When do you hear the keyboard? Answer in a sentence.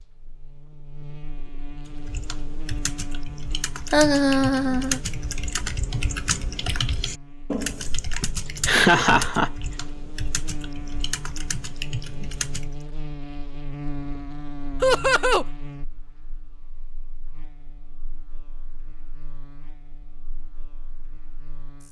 You can hear the keyboard from 1.9 to 12.8 s.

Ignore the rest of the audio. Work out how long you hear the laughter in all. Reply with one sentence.
The laughter can be heard for 3 seconds in total.